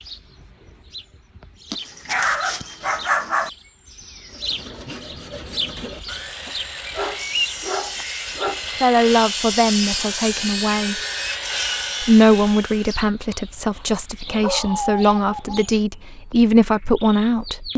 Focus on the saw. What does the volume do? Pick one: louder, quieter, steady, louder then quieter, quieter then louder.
louder.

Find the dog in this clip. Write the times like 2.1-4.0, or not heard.
1.7-3.5, 6.5-8.6, 13.3-15.7.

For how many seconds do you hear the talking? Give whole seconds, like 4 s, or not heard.
8 s.